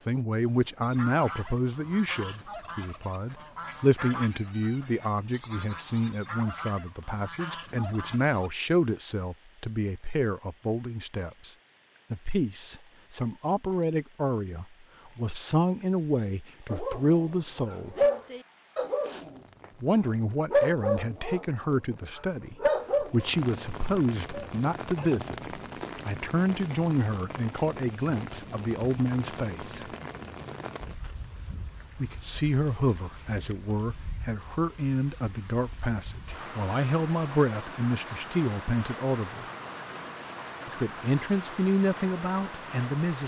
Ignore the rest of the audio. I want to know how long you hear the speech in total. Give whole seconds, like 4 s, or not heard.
38 s.